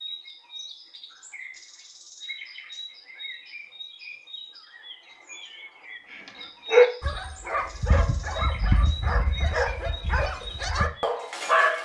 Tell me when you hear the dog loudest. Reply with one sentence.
The loudest moment of the dog is at 7 seconds.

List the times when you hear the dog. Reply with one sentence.
You can hear the dog from 6.1 to 11.7 s.